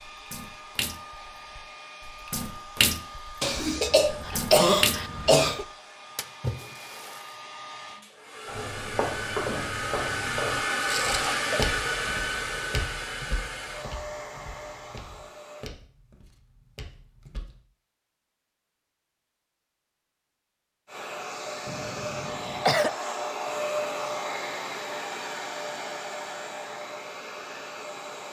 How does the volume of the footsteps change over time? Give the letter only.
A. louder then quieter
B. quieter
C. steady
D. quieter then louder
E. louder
B.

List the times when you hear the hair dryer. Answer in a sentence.
The hair dryer can be heard from 0.0 to 15.7 s and from 20.9 to 28.2 s.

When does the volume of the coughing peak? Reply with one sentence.
The loudest moment of the coughing is at 5 seconds.